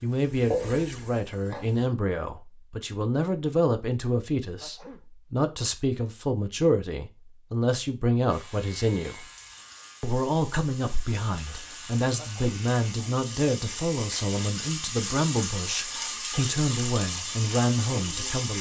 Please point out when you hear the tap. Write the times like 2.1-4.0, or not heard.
0.0-1.9, 8.3-18.5.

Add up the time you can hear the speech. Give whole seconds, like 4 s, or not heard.
18 s.